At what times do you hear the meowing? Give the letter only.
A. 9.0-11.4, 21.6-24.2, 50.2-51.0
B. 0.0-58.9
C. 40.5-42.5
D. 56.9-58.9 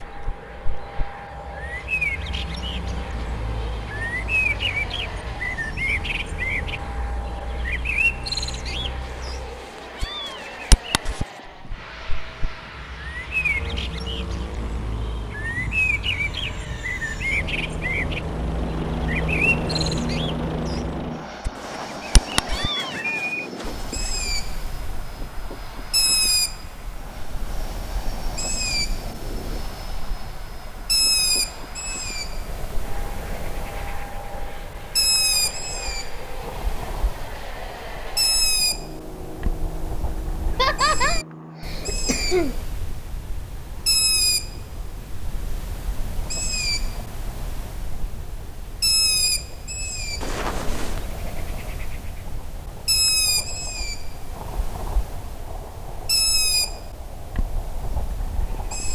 A.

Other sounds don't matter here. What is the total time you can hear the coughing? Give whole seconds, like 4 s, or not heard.
2 s.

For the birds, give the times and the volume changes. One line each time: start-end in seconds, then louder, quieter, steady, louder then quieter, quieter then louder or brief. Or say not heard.
0.0-58.9 steady.